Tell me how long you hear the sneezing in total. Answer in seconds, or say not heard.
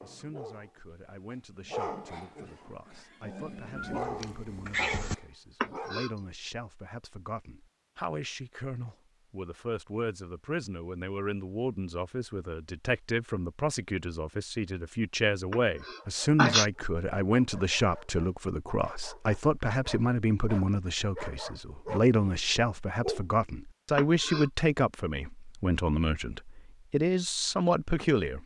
2 s.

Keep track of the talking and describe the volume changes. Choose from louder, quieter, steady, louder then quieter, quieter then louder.
louder.